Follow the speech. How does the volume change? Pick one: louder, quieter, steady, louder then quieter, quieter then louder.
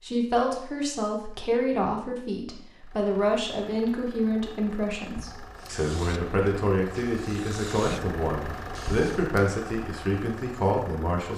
steady.